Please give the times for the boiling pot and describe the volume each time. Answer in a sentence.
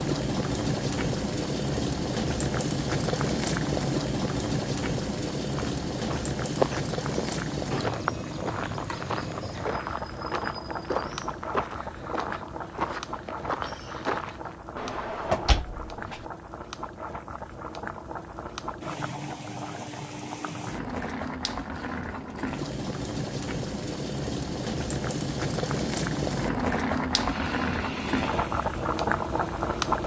The boiling pot can be heard from 0.0 to 30.0 s, getting quieter then louder.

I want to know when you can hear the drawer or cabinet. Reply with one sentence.
You can hear the drawer or cabinet from 14.8 to 16.2 s.